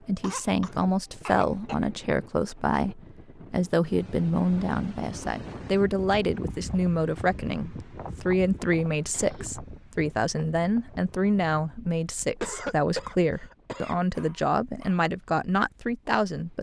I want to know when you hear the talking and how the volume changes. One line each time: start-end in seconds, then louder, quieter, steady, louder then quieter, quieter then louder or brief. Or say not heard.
0.1-16.5 steady.